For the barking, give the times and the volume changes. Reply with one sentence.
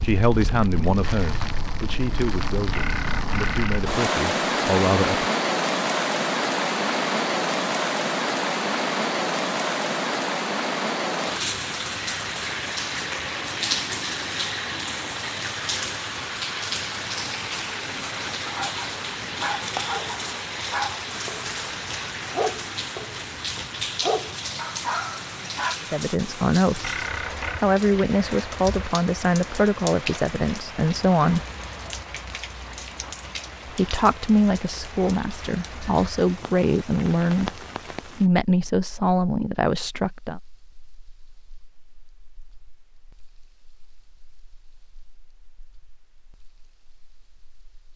You can hear the barking from 18.4 to 25.8 s, getting quieter then louder.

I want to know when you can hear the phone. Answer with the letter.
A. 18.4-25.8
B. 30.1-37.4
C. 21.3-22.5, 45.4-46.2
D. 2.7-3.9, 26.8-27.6
D.